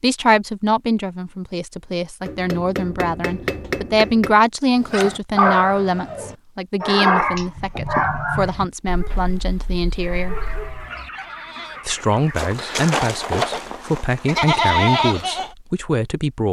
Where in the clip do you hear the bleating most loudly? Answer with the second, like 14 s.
15 s.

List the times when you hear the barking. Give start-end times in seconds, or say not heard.
4.8-10.8.